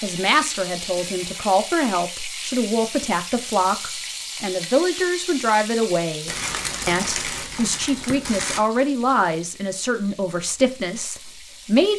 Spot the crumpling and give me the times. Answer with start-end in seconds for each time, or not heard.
6.2-8.7.